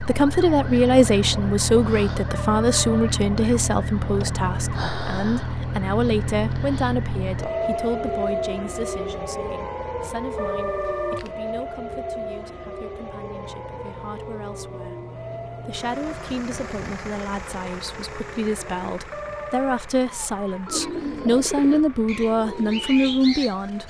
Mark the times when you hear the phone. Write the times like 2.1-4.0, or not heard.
2.2-3.1, 10.3-11.3, 19.1-19.9.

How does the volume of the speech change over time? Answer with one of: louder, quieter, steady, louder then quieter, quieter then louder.
quieter then louder.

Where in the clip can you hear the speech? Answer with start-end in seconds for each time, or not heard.
0.0-23.8.